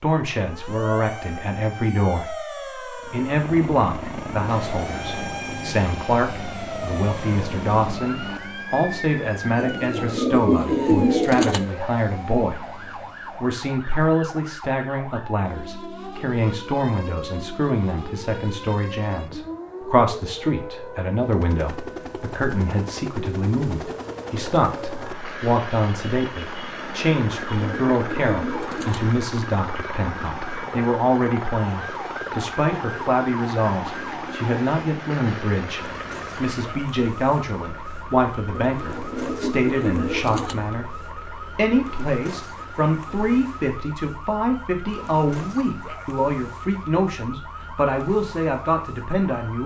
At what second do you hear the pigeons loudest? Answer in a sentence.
The loudest moment of the pigeons is at 11 seconds.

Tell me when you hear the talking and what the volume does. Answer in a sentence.
You can hear the talking from 0.0 to 49.6 s, at a steady volume.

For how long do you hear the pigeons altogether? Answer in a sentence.
You can hear the pigeons for 6 seconds altogether.